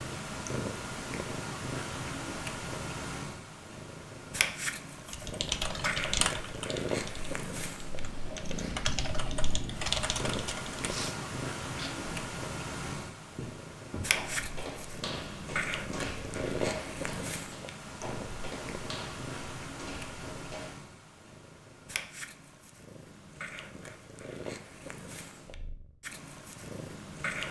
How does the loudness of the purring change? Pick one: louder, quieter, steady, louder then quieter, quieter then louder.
quieter.